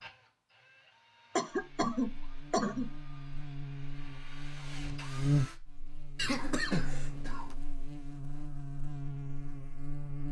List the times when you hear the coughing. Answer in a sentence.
You can hear the coughing from 1.4 to 2.9 s and from 6.2 to 7.5 s.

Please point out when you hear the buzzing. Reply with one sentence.
You can hear the buzzing from 1.5 to 10.2 s.